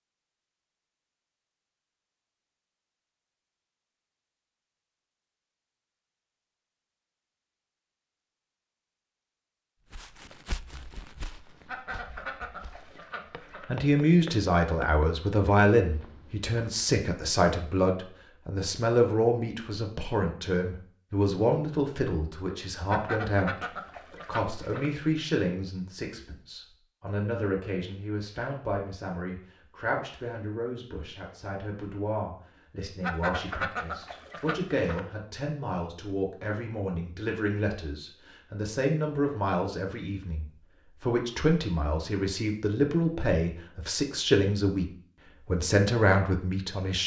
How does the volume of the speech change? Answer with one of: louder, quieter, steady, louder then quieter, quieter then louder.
quieter then louder.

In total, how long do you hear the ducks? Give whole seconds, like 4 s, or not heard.
6 s.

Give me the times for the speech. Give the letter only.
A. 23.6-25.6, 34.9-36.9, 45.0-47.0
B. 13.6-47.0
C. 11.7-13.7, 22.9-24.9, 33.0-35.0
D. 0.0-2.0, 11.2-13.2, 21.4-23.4
B.